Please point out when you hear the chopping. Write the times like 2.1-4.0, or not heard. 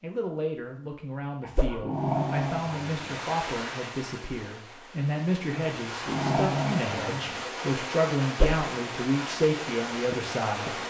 not heard.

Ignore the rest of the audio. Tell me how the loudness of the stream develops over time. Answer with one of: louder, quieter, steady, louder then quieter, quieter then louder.
quieter then louder.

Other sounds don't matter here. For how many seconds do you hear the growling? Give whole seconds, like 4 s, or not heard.
3 s.